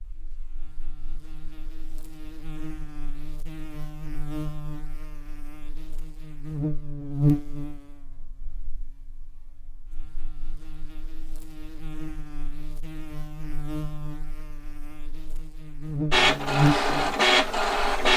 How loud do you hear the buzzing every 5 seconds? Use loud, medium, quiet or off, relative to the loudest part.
quiet, loud, quiet, loud.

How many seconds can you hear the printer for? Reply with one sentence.
You can hear the printer for 2 seconds altogether.